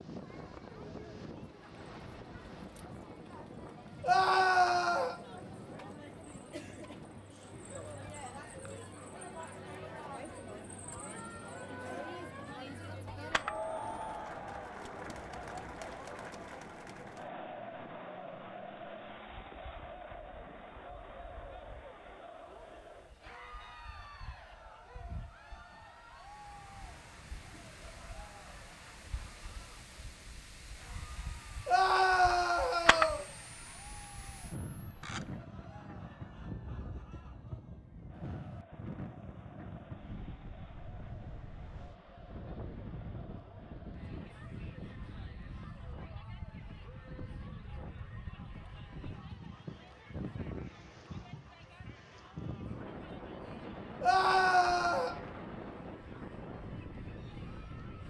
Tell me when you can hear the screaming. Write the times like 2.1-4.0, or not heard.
4.0-5.2, 31.6-33.2, 54.0-55.1.